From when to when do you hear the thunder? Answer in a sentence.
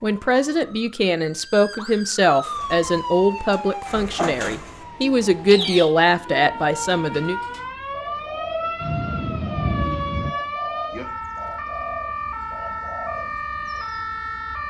The thunder can be heard from 8.8 to 10.3 s.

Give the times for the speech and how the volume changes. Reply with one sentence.
The speech can be heard from 0.0 to 7.4 s, at a steady volume.